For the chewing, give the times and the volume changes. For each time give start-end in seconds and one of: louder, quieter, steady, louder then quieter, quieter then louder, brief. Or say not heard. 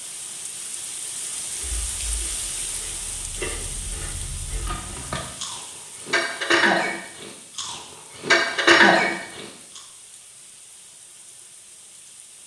1.6-9.8 louder.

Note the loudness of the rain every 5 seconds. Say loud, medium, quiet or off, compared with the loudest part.
loud, medium, quiet.